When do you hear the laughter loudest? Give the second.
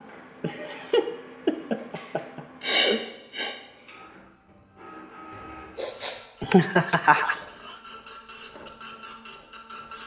7 s.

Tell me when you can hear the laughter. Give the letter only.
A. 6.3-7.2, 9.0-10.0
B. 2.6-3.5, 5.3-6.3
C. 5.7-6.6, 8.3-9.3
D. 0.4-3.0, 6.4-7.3
D.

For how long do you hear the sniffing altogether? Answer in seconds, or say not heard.
2 s.